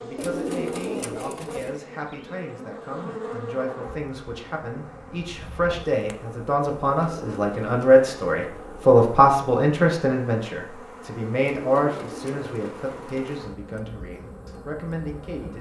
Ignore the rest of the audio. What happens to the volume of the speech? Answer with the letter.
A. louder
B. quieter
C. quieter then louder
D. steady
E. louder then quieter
E.